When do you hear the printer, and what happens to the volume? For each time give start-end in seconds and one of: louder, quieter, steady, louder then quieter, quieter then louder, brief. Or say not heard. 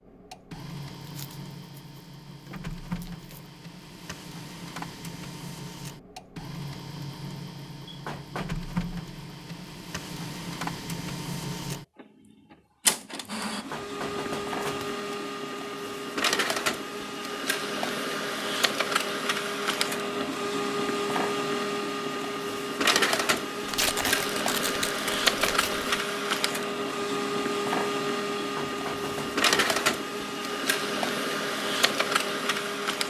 0.0-33.0 louder.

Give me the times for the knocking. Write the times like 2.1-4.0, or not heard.
7.8-8.5, 13.5-14.9, 28.4-29.8.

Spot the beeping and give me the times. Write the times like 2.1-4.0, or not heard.
not heard.